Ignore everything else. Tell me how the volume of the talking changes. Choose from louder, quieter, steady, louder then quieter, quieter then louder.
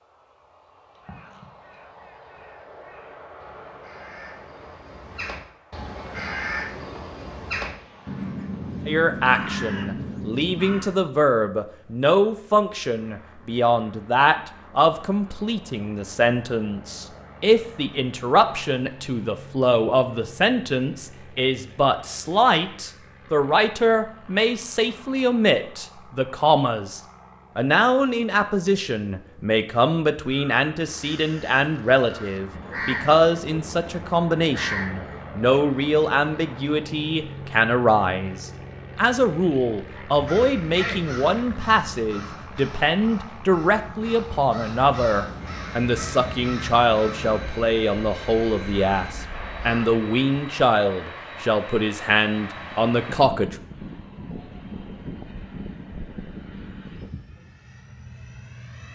steady.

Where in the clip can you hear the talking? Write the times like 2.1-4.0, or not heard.
8.8-53.5.